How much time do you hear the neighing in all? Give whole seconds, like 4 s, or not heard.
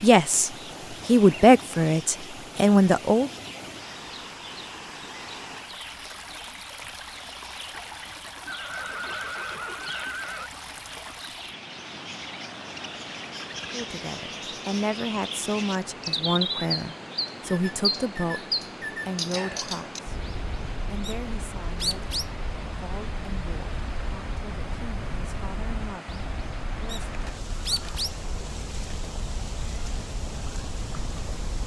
3 s.